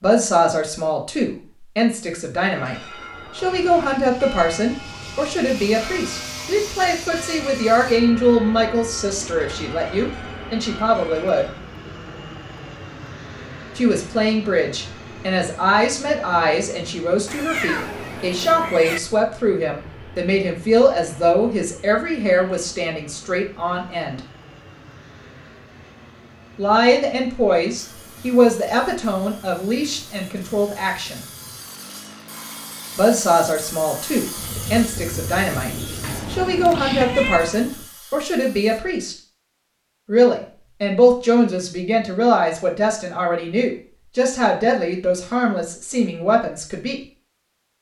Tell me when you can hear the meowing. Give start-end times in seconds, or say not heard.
17.2-19.0, 36.0-37.6.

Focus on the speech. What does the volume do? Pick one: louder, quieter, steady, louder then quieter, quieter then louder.
steady.